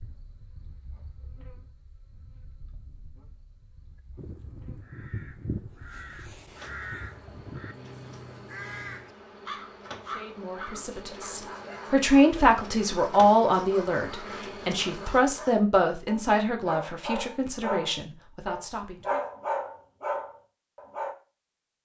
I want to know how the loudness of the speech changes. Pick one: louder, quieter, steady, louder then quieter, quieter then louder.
louder then quieter.